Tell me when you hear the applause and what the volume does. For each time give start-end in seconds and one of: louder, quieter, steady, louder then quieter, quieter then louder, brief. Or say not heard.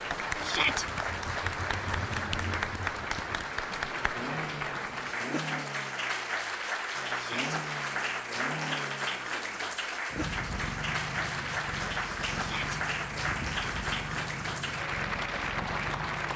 0.0-16.3 steady.